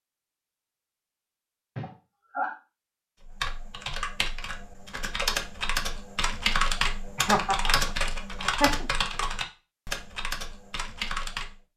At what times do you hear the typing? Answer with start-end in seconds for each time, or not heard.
3.2-11.6.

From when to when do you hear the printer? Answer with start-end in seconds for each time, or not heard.
not heard.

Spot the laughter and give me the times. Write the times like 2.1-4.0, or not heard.
1.8-2.5, 7.2-7.8, 8.4-8.8.